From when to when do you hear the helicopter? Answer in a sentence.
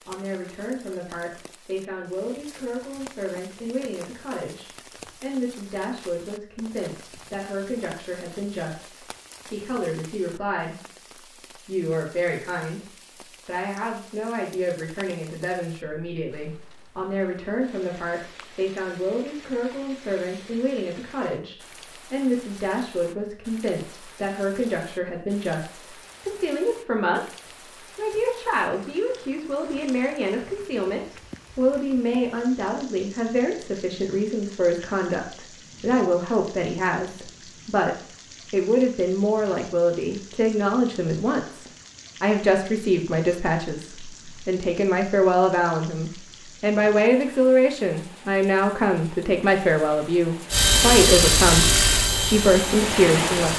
The helicopter can be heard from 50.5 to 53.5 s.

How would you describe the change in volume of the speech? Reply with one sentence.
The loudness of the speech goes up.